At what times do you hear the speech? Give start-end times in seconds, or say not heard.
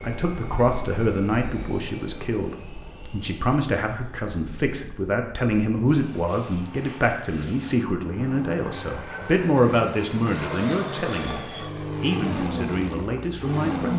0.0-13.9.